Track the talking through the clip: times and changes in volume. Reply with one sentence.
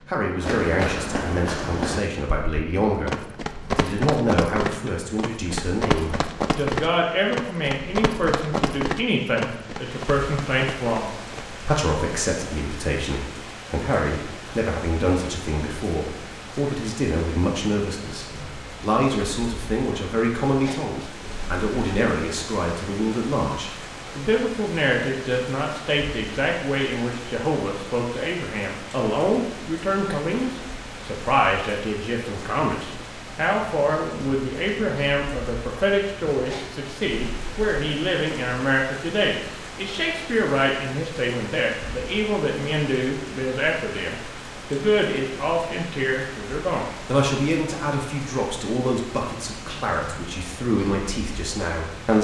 You can hear the talking from 0.1 to 52.1 s, at a steady volume.